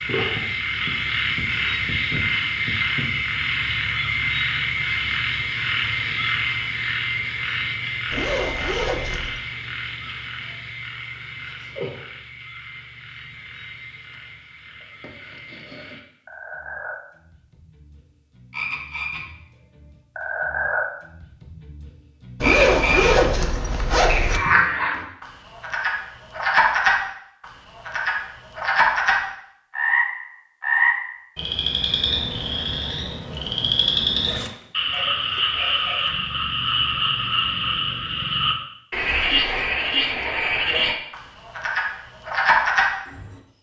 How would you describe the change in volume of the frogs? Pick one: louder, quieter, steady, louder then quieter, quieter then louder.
quieter then louder.